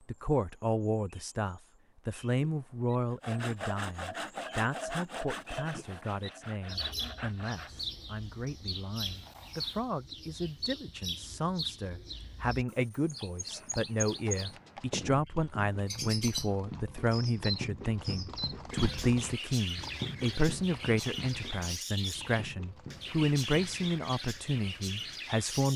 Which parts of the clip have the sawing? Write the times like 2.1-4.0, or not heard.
3.1-7.8.